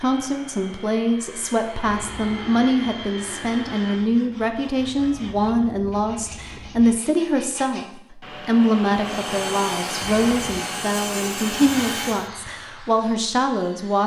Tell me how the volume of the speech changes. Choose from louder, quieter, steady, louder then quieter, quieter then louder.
steady.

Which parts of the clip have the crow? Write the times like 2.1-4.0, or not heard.
not heard.